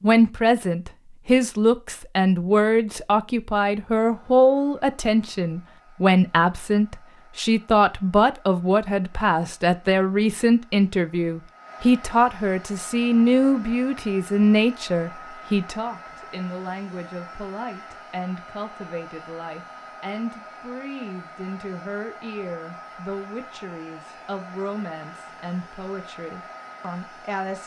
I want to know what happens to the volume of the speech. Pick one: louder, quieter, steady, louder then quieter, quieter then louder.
quieter.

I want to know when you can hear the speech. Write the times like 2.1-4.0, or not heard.
0.0-27.6.